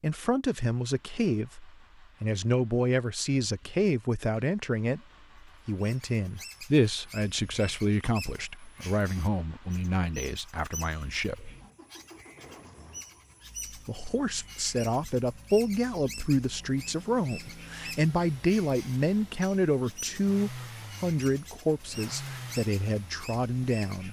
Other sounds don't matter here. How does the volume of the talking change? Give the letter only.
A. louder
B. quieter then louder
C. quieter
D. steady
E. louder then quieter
D.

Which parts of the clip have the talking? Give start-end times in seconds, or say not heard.
0.0-5.0, 5.7-11.5, 13.8-24.0.